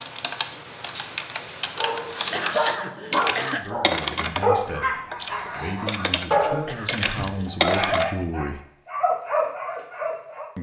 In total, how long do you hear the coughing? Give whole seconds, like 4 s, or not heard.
3 s.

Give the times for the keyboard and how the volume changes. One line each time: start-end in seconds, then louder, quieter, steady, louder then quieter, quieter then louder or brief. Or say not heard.
0.0-8.1 louder.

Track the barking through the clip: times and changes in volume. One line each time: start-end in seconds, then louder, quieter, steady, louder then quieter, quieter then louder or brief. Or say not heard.
1.8-10.5 steady.